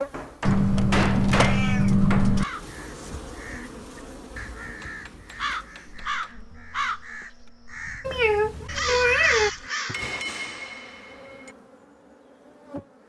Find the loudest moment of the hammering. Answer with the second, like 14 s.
1 s.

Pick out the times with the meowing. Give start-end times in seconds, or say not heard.
0.5-2.5, 8.1-9.5.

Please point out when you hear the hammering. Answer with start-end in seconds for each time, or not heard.
0.1-2.4, 4.6-6.3, 9.9-11.6.